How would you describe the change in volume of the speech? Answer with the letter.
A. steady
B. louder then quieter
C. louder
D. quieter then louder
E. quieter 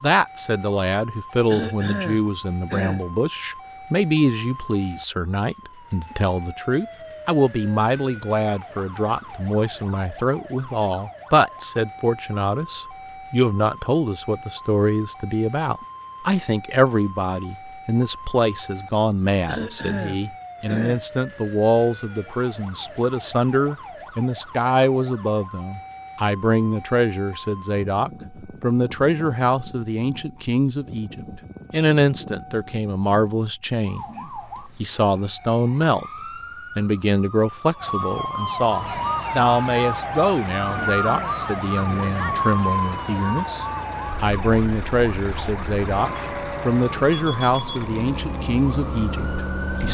A.